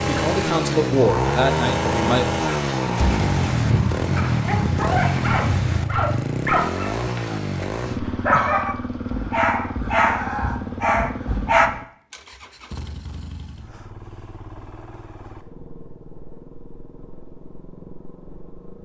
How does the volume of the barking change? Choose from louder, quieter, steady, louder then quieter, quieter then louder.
louder.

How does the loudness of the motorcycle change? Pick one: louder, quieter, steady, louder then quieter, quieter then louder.
quieter.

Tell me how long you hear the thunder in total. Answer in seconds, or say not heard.
3 s.